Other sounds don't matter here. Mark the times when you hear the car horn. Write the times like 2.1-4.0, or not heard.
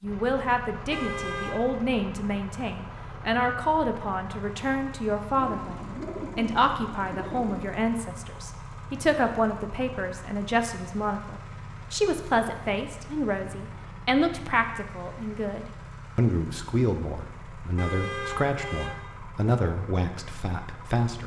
0.9-1.8, 17.8-18.9.